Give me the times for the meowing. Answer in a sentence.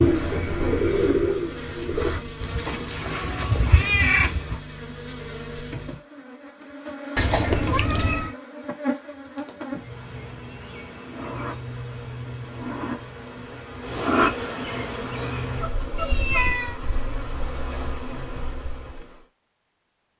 You can hear the meowing from 2.4 to 4.6 s, from 7.2 to 8.3 s and from 15.9 to 16.8 s.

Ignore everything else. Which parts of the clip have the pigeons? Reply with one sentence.
The pigeons can be heard from 0.0 to 2.2 s.